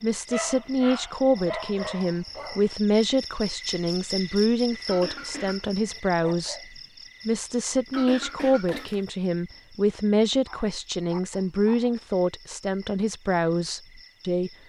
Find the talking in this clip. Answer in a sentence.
The talking can be heard from 0.0 to 6.6 s and from 7.2 to 14.5 s.